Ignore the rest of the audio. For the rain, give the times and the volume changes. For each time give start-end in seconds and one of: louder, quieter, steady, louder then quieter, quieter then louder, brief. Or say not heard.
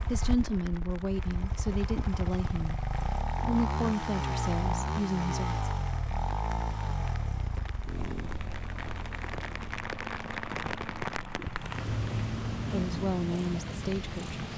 0.0-14.5 louder.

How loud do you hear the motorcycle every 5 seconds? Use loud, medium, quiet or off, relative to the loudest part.
loud, loud, medium.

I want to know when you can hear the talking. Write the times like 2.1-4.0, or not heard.
0.1-5.7, 12.7-14.4.